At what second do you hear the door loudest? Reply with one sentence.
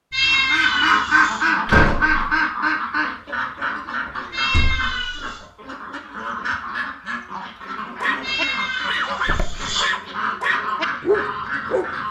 The volume of the door peaks at 2 seconds.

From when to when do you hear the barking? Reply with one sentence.
The barking can be heard from 7.6 to 12.0 s.